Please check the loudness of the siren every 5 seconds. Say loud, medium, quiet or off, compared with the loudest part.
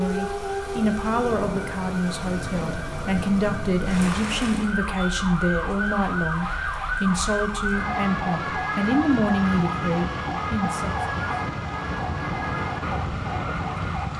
medium, loud, loud.